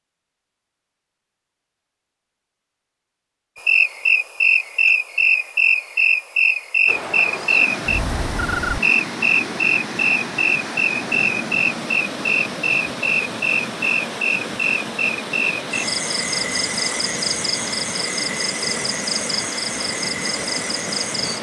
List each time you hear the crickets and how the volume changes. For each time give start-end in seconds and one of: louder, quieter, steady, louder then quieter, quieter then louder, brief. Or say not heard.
3.5-21.3 quieter.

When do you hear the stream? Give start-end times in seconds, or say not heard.
6.8-21.3.